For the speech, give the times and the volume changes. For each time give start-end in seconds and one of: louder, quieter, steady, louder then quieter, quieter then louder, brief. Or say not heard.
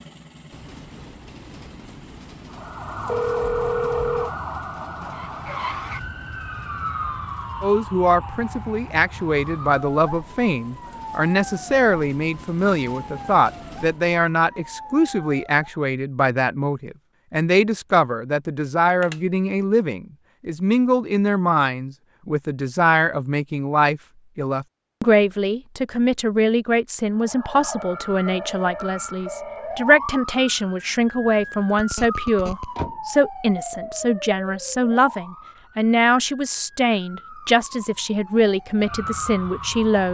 7.6-40.1 steady.